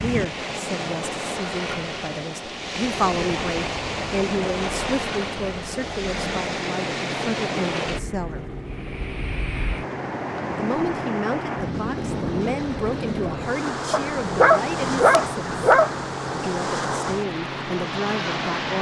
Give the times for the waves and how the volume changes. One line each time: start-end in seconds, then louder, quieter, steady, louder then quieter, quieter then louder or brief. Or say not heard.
0.0-18.7 steady.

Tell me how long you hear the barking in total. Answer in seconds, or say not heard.
2 s.